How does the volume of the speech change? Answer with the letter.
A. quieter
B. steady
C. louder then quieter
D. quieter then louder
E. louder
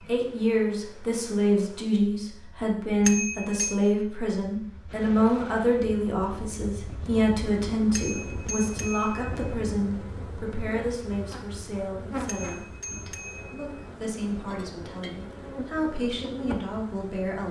A.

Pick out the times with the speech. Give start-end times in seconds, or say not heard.
0.0-17.4.